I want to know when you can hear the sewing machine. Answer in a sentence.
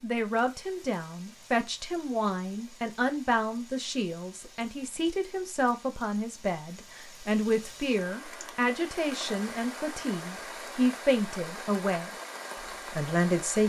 You can't hear the sewing machine here.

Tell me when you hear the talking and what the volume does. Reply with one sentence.
The talking can be heard from 0.0 to 12.1 s, at a steady volume; and briefly from 12.9 to 13.6 s.